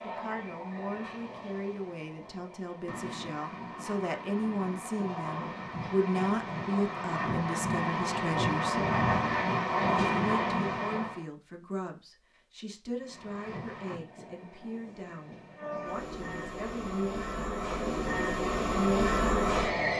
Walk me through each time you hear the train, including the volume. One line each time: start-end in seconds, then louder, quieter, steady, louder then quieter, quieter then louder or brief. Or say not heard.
0.0-11.2 louder
12.9-19.9 louder.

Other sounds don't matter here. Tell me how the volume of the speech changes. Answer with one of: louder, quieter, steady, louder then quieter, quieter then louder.
louder then quieter.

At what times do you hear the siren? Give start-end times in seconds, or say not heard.
not heard.